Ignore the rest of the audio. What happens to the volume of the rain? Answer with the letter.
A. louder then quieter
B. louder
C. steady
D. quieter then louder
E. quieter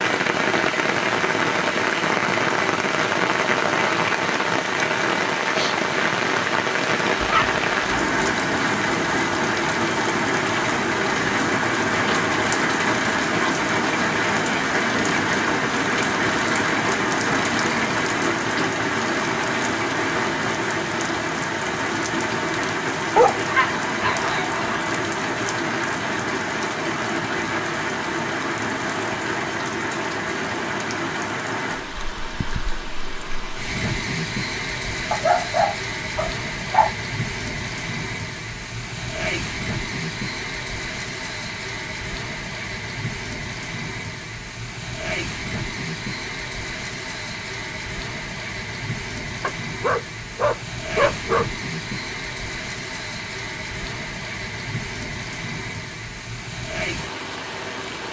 E.